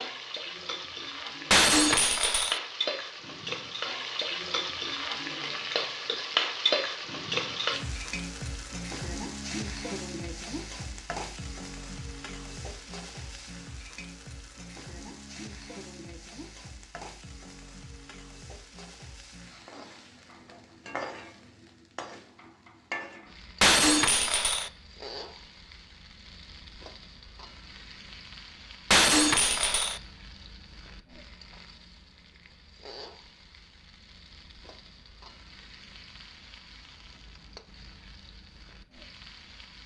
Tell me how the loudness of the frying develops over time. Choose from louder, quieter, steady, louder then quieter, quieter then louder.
quieter.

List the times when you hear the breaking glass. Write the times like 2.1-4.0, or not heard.
1.5-2.6, 23.6-24.7, 28.9-30.0.